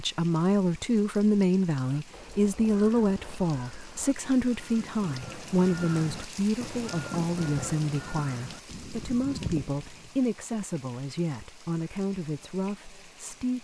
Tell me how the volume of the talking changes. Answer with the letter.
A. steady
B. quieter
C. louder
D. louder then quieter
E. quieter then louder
B.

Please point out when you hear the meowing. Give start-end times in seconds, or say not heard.
not heard.